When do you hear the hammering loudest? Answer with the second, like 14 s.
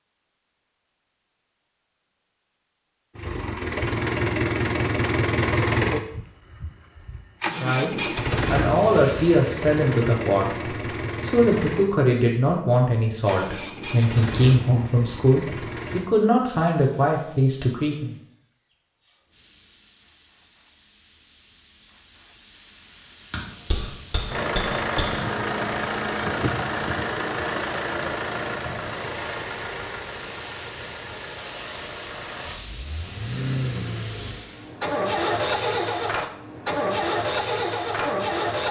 25 s.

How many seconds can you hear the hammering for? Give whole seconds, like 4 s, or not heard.
2 s.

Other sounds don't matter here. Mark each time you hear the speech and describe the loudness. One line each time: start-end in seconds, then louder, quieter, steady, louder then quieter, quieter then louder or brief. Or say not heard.
7.6-18.1 steady.